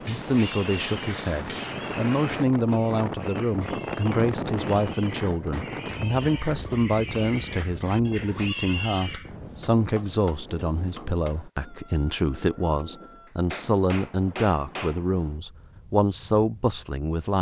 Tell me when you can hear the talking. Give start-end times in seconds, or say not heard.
0.1-17.3.